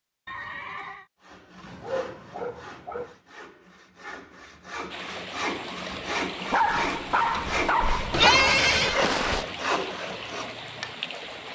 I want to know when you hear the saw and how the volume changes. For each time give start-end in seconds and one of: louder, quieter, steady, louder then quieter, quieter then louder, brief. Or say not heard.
1.2-10.9 louder.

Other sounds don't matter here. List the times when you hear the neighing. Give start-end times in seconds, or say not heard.
0.2-1.1, 8.1-9.0.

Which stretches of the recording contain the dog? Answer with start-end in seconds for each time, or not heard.
1.6-3.1, 6.5-9.4.